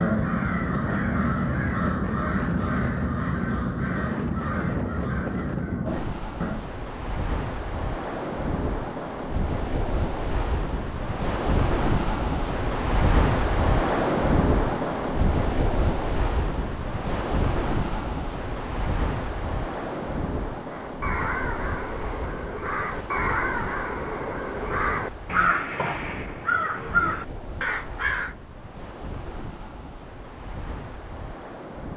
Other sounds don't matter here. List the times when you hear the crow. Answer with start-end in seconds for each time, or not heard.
0.0-6.7, 20.6-28.4.